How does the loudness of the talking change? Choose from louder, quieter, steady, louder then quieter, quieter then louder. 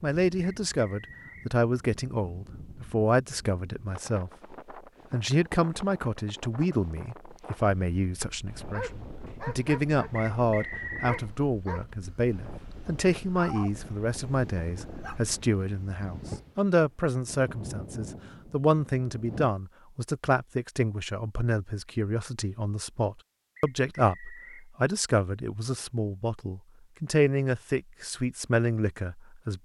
steady.